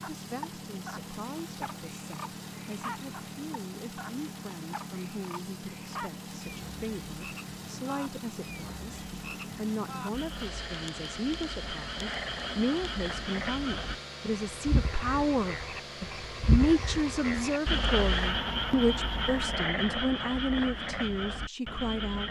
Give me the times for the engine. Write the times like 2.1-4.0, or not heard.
0.0-19.6.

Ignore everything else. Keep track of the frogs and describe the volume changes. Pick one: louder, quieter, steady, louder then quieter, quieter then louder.
louder.